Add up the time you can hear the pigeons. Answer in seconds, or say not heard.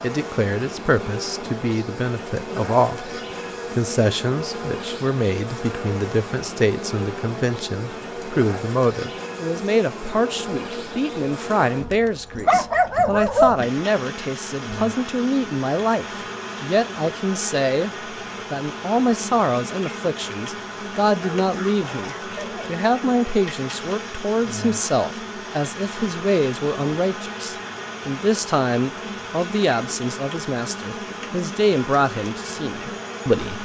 not heard.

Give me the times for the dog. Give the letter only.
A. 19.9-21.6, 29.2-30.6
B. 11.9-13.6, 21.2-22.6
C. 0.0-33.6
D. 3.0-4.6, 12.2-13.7
B.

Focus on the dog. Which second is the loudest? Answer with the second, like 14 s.
13 s.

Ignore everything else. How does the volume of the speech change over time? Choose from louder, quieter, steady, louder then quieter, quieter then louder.
steady.